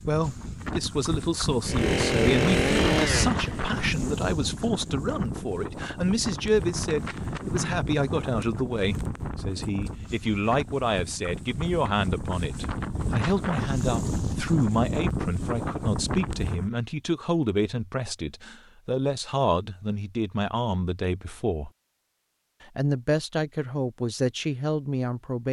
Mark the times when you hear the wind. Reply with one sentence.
You can hear the wind from 0.0 to 16.7 s.